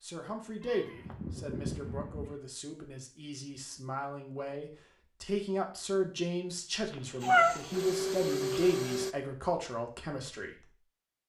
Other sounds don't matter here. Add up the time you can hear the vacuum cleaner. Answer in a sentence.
You can hear the vacuum cleaner for 2 seconds altogether.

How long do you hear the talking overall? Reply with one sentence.
The talking can be heard for 11 seconds in total.